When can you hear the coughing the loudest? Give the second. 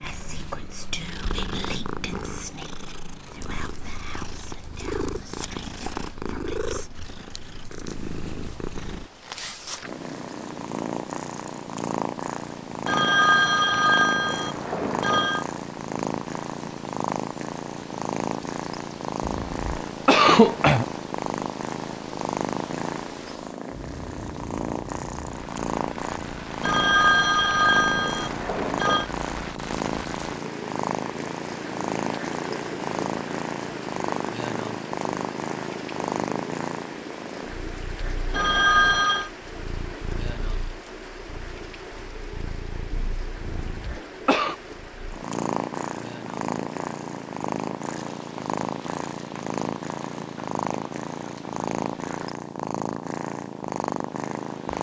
20 s.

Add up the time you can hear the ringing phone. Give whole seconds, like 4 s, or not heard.
6 s.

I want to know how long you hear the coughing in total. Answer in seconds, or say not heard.
3 s.